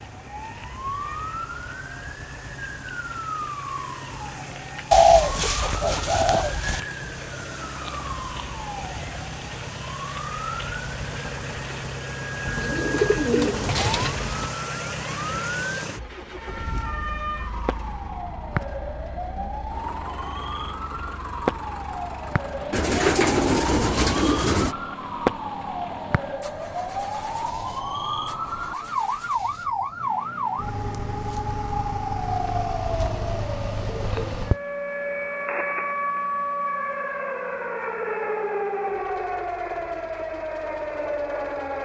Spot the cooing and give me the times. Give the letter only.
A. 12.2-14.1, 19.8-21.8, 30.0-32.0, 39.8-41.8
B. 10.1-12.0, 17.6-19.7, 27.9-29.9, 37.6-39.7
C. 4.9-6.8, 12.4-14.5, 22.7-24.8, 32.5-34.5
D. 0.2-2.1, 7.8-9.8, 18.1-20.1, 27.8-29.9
C.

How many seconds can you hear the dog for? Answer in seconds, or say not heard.
not heard.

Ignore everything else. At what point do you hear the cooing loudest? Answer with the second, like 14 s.
5 s.